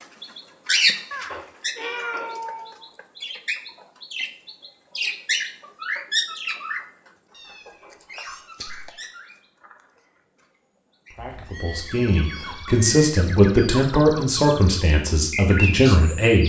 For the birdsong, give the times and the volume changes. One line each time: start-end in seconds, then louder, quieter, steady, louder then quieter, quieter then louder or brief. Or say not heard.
0.0-6.8 quieter then louder
7.5-16.4 quieter then louder.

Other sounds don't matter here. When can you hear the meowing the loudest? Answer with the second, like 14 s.
2 s.